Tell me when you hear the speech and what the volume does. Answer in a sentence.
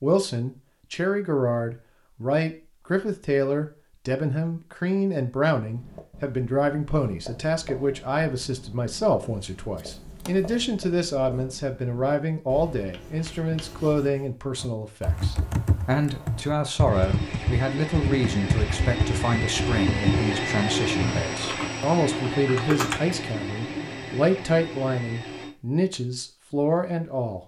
You can hear the speech from 0.0 to 27.4 s, at a steady volume.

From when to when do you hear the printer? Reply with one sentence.
The printer can be heard from 16.9 to 25.6 s.